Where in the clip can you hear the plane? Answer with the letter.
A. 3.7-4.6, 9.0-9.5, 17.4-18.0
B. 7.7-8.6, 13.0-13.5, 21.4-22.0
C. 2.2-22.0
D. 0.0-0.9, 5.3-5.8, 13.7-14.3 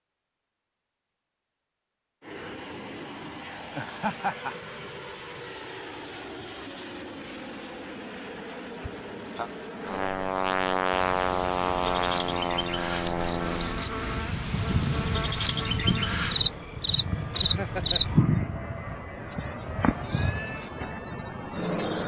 C.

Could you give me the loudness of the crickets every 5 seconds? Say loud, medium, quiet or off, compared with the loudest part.
off, off, loud, loud, loud.